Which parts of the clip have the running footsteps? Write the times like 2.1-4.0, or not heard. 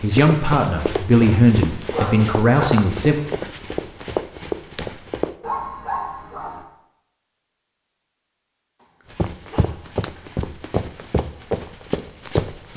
0.0-5.3, 9.1-12.7.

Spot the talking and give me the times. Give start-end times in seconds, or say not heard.
0.0-3.2.